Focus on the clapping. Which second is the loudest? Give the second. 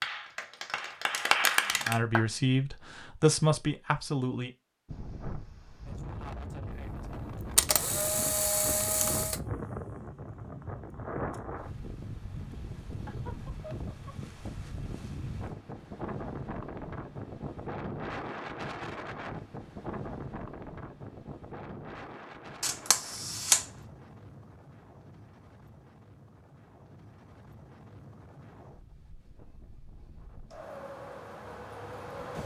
1 s.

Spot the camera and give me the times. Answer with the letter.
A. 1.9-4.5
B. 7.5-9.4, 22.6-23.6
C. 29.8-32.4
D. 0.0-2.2
B.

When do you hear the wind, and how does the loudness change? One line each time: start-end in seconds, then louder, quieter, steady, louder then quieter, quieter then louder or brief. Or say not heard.
4.8-32.4 quieter.